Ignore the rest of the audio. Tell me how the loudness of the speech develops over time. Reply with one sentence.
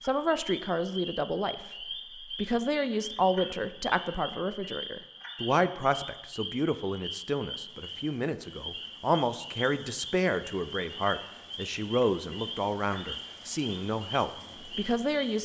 The loudness of the speech stays about the same.